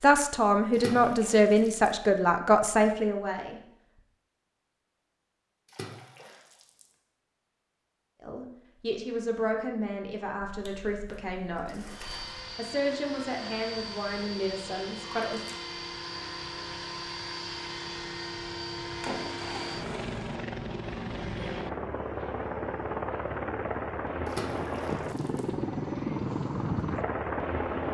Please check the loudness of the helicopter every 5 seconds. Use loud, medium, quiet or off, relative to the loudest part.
off, off, medium, medium, loud, loud.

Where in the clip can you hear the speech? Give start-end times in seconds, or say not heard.
0.0-3.6, 8.2-11.8, 12.6-15.4.